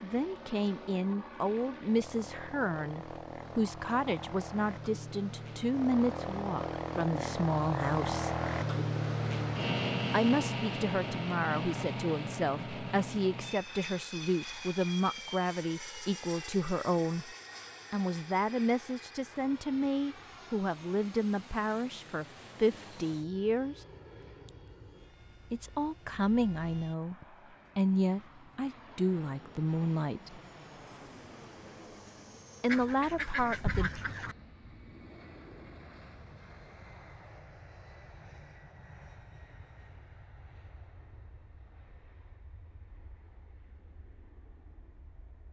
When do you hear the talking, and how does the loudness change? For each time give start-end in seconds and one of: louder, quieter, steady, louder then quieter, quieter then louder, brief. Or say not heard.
0.0-8.3 steady
10.1-23.9 steady
25.5-27.1 brief
27.8-30.4 brief
32.6-33.9 brief.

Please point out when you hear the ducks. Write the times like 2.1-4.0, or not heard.
32.6-34.4.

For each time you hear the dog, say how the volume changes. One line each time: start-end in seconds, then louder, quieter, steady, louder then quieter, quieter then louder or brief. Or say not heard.
not heard.